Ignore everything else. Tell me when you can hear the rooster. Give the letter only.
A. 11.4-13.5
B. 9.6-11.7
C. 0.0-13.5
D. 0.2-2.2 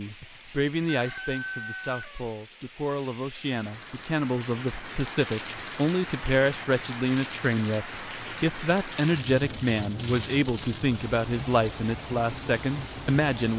D.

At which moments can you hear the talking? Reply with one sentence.
The talking can be heard from 0.0 to 13.5 s.